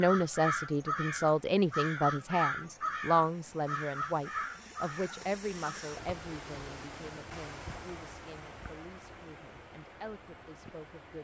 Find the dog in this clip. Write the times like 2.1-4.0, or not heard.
not heard.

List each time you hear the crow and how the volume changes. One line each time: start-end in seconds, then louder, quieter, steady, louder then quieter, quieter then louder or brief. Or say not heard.
0.0-6.0 quieter.